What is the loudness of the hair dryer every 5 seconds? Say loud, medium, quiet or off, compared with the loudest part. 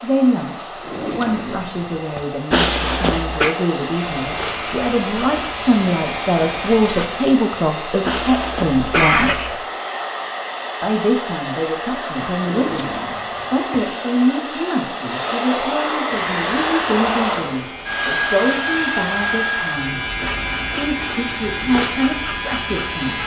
medium, medium, medium, loud, medium.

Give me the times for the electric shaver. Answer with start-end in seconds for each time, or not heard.
3.9-7.1, 16.1-23.2.